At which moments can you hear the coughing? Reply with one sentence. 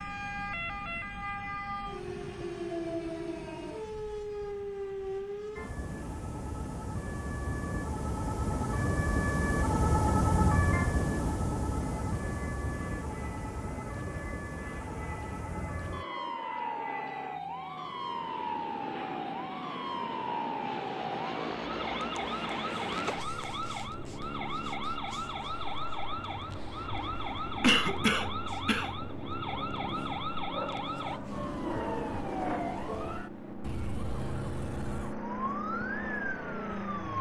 The coughing can be heard from 27.6 to 28.9 s.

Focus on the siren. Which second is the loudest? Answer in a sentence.
The volume of the siren peaks at 10 seconds.